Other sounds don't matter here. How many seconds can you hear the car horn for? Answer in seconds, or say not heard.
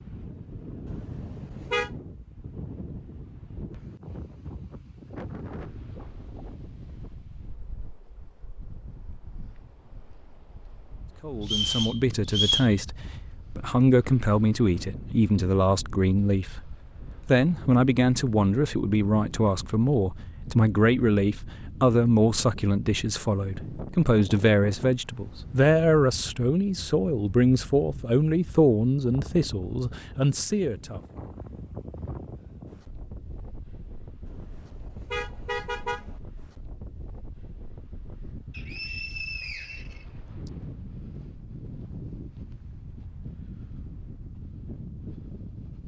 3 s.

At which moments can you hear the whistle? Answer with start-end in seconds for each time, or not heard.
11.4-12.8, 38.5-40.5.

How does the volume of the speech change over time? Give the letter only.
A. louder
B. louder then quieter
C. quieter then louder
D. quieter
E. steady
E.